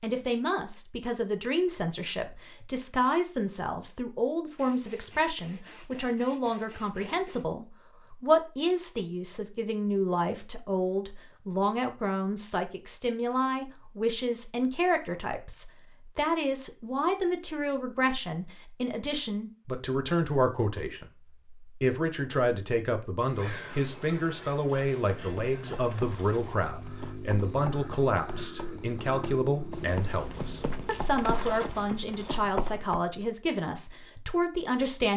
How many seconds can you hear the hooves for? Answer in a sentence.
You can hear the hooves for 8 seconds altogether.